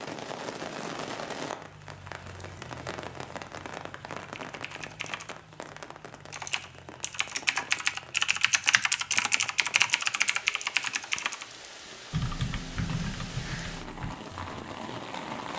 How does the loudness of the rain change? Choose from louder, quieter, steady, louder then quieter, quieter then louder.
quieter then louder.